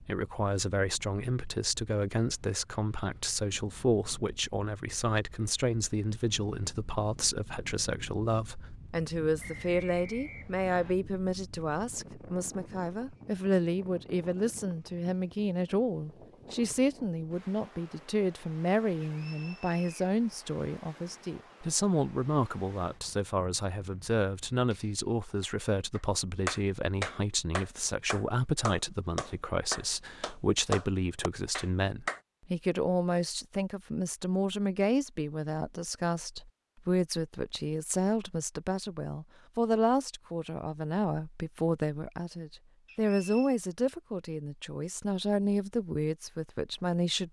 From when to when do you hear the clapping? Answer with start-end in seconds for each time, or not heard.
24.7-32.2.